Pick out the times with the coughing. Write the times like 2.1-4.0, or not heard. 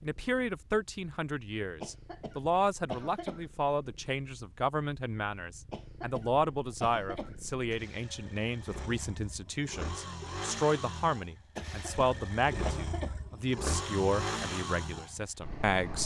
1.8-3.5, 5.7-7.4, 11.6-13.2.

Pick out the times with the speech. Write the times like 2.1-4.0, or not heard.
0.0-16.0.